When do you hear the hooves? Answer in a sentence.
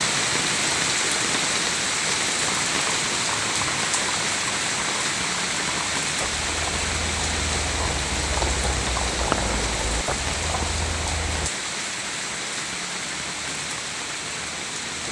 You can hear the hooves from 2.5 to 11.5 s.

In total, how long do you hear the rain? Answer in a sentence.
You can hear the rain for 15 seconds altogether.